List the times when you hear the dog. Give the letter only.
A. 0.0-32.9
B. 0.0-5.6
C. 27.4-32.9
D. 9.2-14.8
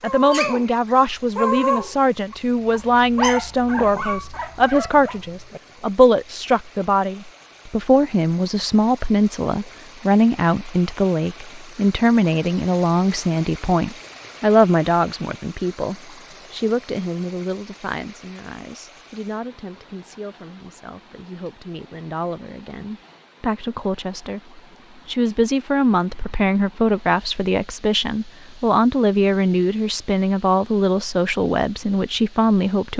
B.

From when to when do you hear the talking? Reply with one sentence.
The talking can be heard from 0.0 to 32.9 s.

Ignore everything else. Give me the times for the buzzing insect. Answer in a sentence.
The buzzing insect can't be heard in this clip.